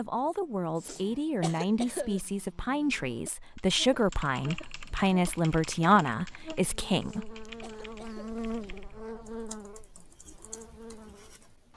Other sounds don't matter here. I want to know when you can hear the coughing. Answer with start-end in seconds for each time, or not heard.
0.8-2.2, 7.0-8.8.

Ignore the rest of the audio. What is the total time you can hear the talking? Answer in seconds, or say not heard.
7 s.